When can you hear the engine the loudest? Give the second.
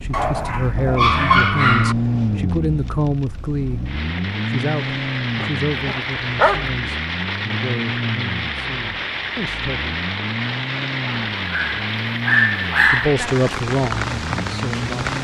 2 s.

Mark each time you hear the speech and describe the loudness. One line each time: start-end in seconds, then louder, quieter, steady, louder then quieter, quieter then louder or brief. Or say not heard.
0.0-9.9 quieter
12.8-14.9 brief.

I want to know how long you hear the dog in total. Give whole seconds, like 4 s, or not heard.
5 s.